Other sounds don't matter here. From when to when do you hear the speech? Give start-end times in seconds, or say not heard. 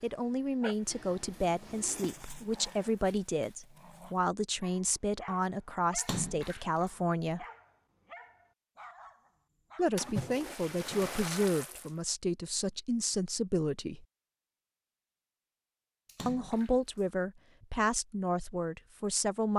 0.0-7.5, 9.8-14.1, 16.2-19.5.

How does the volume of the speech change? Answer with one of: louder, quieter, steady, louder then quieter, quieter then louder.
steady.